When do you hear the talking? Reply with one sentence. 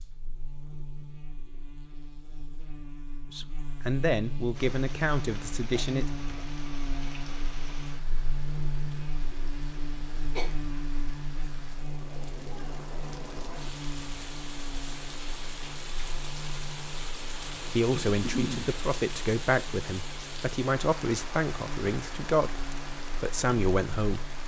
The talking can be heard from 3.3 to 6.0 s and from 17.8 to 24.4 s.